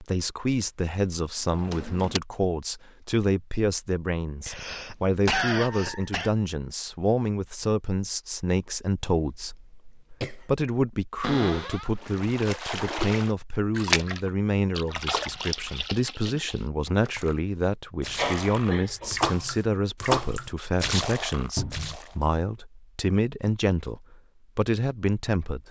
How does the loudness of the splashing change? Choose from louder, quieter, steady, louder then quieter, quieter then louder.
quieter then louder.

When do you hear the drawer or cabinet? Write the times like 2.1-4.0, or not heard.
1.5-2.2, 11.2-11.9, 21.6-22.0.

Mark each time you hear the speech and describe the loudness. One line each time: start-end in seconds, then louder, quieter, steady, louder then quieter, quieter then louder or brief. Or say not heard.
0.0-25.6 steady.